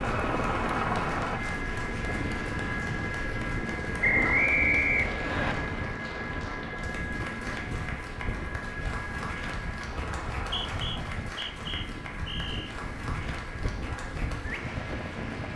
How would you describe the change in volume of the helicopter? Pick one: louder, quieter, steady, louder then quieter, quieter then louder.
quieter.